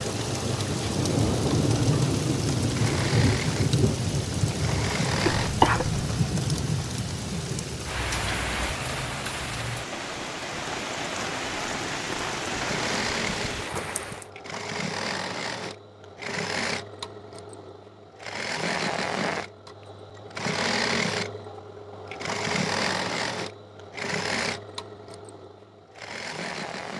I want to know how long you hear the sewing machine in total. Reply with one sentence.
The sewing machine can be heard for 20 seconds in total.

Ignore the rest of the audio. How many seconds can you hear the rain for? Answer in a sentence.
You can hear the rain for 14 seconds altogether.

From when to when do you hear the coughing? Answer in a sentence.
You can hear the coughing from 5.2 to 6.0 s.